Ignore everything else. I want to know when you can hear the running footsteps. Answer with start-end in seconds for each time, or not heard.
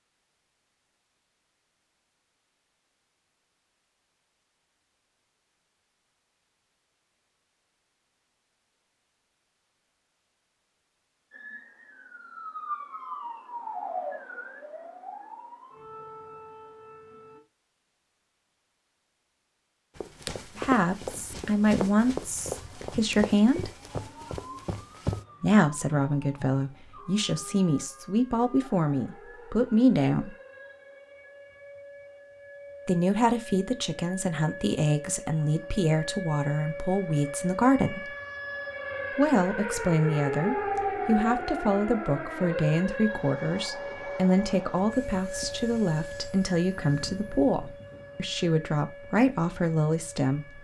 19.9-25.2.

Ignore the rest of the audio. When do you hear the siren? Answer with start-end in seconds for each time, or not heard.
11.3-17.4, 21.1-50.5.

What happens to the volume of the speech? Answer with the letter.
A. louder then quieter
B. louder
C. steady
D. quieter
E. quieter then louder
C.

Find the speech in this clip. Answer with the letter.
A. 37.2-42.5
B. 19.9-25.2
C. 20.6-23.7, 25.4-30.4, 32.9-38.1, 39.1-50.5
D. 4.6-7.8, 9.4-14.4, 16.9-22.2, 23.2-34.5
C.